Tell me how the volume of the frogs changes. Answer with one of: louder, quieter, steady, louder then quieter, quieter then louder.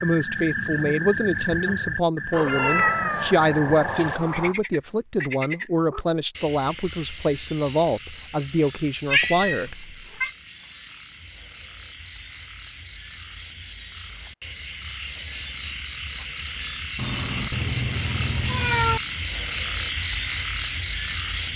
quieter then louder.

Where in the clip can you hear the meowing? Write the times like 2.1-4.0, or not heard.
2.3-4.5, 9.1-10.3, 16.9-19.0.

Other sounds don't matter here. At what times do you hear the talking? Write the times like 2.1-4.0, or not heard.
0.0-9.8.